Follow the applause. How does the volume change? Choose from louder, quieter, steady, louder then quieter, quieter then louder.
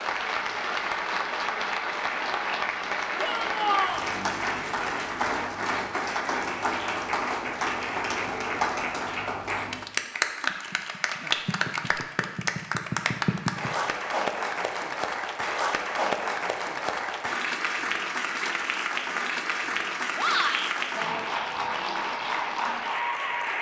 steady.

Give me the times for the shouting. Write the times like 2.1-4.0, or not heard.
3.1-4.1, 20.1-20.8.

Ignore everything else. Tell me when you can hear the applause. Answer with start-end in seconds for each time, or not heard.
0.0-23.5.